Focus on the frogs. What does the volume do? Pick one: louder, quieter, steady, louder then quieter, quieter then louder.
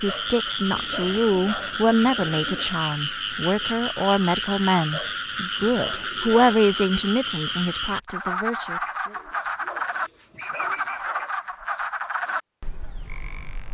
steady.